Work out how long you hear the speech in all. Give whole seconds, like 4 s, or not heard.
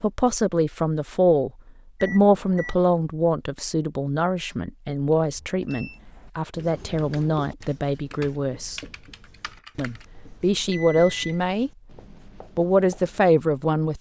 12 s.